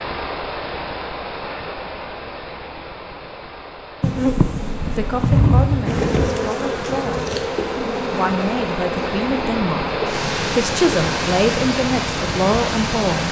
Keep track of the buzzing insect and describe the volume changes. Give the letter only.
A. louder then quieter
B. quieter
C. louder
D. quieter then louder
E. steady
B.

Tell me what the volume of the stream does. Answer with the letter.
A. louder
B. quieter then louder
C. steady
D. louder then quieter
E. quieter
B.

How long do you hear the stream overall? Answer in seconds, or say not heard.
13 s.